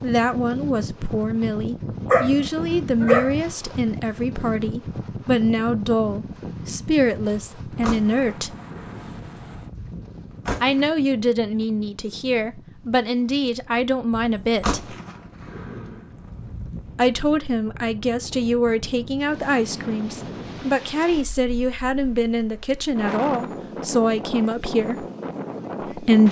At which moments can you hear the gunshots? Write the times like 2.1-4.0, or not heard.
7.3-10.9, 14.1-16.9.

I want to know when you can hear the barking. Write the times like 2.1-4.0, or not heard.
2.0-3.3.